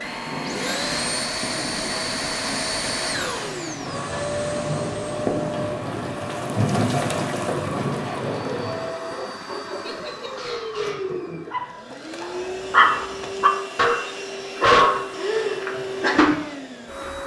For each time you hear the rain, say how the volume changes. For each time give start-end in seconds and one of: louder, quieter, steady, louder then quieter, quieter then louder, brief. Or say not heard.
0.0-8.9 louder.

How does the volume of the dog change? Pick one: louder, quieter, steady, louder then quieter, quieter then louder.
louder.